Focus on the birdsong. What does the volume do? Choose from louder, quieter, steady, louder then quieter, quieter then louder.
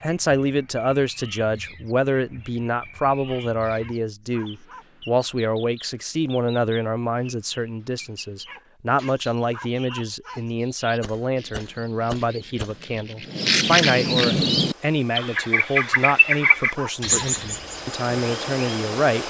louder.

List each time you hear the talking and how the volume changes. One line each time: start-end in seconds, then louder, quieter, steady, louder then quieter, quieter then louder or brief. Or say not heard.
0.0-19.2 steady.